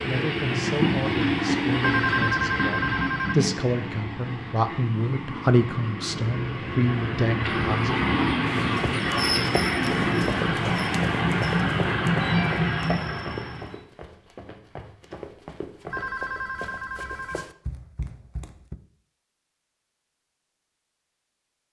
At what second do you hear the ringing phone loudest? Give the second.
2 s.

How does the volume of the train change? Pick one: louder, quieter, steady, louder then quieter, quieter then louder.
quieter then louder.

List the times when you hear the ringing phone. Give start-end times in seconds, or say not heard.
1.8-3.4, 15.9-17.4.